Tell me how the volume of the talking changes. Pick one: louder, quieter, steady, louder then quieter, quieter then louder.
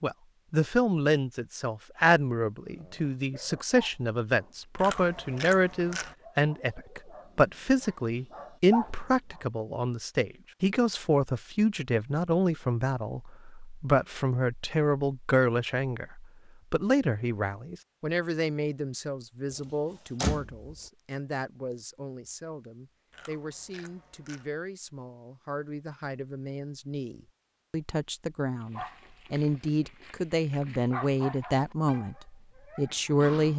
quieter then louder.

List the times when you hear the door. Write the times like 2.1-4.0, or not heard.
19.5-20.8.